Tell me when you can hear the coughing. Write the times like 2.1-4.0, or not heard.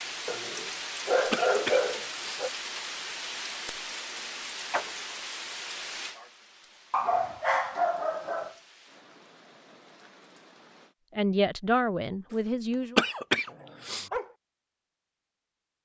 1.3-2.5, 12.9-14.1.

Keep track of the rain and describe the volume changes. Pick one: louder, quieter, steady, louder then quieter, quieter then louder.
quieter.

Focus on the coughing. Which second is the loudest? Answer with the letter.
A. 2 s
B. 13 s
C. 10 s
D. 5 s
B.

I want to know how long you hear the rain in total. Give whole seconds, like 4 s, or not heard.
11 s.